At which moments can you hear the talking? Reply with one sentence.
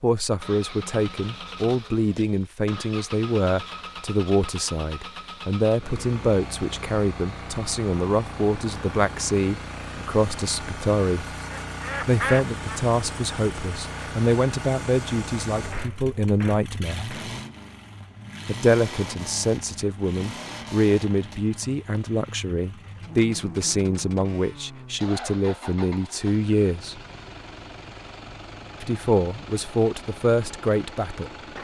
You can hear the talking from 0.0 to 11.3 s, from 12.1 to 17.1 s, from 18.4 to 27.0 s and from 28.8 to 31.3 s.